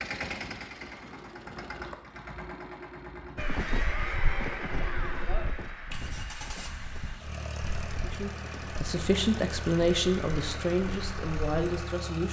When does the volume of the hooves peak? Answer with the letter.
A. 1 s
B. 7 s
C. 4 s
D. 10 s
C.